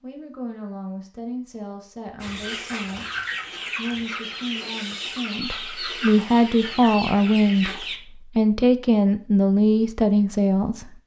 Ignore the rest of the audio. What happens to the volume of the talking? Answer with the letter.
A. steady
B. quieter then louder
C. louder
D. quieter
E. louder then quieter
C.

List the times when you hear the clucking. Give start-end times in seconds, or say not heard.
2.2-8.0.